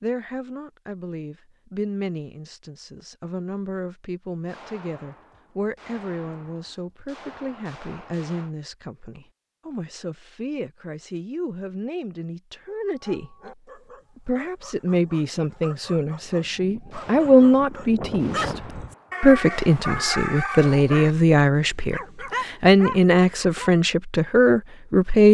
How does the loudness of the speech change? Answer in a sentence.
The loudness of the speech goes up.